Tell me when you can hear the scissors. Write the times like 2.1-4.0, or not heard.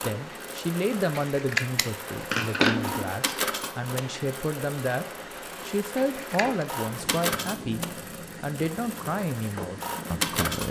1.1-3.1, 6.0-6.7.